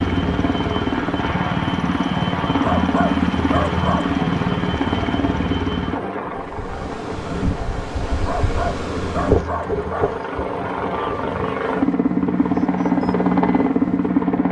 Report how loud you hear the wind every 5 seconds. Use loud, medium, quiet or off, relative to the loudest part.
off, loud, medium.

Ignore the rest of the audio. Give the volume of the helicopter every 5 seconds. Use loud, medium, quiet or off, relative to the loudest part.
loud, medium, loud.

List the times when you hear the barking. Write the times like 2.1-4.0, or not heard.
2.6-4.2, 8.2-10.2.